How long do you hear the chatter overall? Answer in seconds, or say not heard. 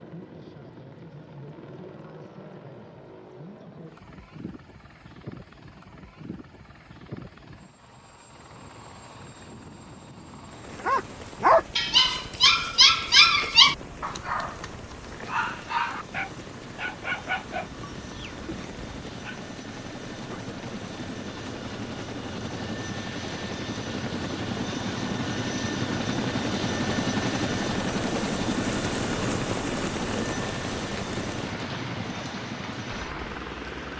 not heard.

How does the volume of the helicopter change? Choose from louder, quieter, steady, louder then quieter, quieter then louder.
louder.